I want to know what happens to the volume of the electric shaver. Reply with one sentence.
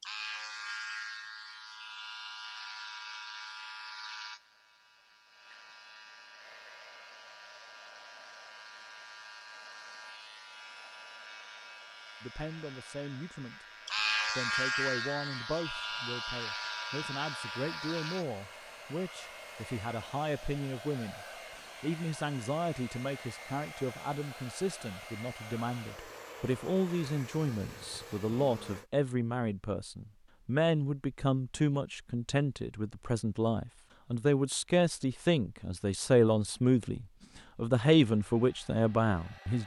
The loudness of the electric shaver goes down, then up.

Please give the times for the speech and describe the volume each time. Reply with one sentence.
The speech can be heard briefly from 12.2 to 13.7 s; and from 14.3 to 39.6 s, getting louder.